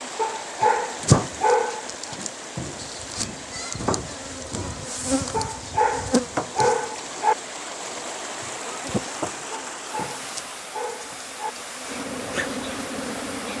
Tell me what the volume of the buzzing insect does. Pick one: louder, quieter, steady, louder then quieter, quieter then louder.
quieter.